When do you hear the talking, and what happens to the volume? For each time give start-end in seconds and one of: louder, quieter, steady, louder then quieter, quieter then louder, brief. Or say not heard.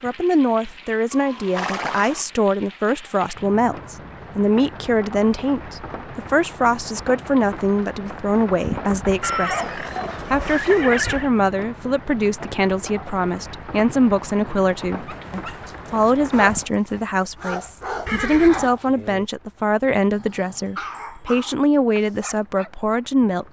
0.0-23.4 steady.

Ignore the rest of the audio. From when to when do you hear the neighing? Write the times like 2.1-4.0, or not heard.
1.1-2.2, 9.2-11.3, 18.1-18.7.